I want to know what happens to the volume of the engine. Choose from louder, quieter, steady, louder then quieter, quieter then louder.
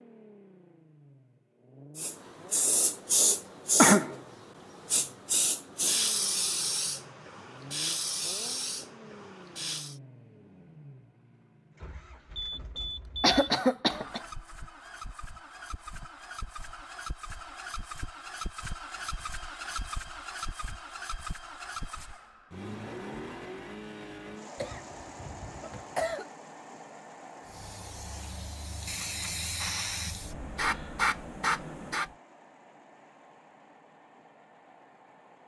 louder then quieter.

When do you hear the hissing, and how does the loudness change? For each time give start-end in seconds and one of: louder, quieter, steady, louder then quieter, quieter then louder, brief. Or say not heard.
1.9-9.9 quieter
27.4-32.1 louder.